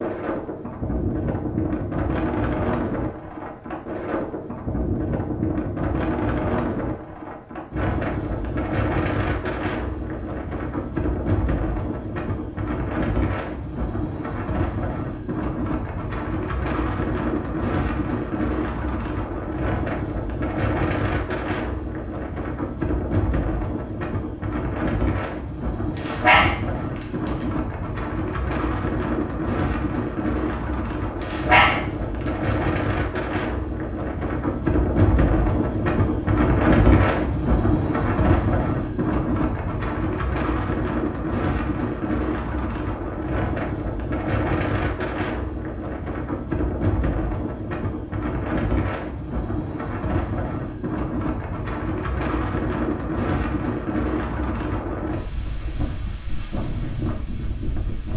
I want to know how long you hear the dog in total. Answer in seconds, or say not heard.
3 s.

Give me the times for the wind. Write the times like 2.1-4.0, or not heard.
0.0-58.1.